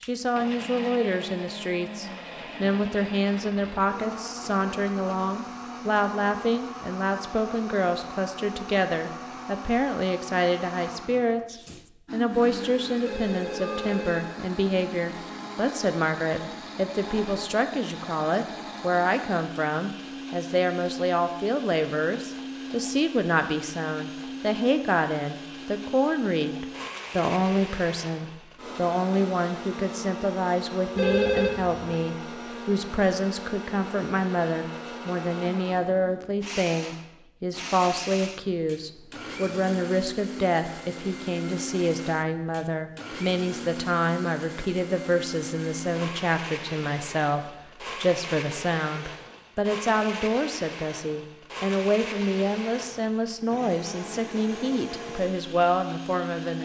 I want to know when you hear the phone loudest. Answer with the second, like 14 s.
31 s.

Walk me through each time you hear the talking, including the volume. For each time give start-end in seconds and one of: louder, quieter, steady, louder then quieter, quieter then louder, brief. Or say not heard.
0.0-56.5 steady.